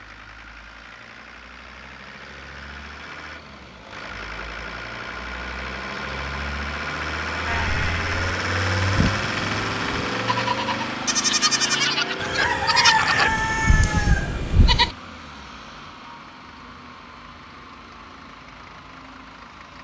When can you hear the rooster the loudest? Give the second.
13 s.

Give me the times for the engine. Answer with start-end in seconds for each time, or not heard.
0.0-19.7.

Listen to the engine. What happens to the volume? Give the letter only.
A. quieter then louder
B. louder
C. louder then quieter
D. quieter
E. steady
C.